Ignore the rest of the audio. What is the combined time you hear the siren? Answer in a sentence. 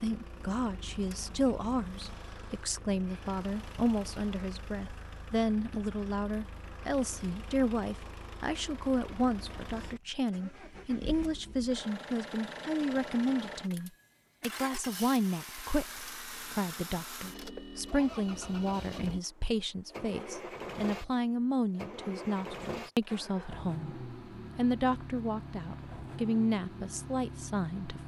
The siren can't be heard in this clip.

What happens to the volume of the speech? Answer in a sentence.
The loudness of the speech stays about the same.